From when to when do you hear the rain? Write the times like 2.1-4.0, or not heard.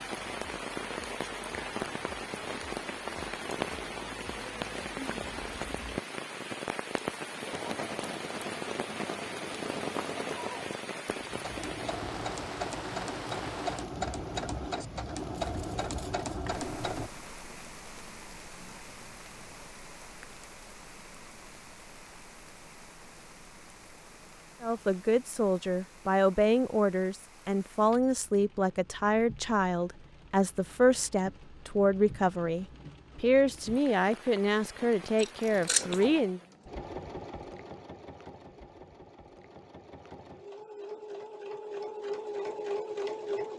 0.0-36.5.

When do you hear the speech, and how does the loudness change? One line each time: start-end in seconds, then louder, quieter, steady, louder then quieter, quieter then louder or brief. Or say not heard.
24.6-36.4 steady.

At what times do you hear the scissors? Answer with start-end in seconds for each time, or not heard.
15.3-16.6, 35.1-36.0.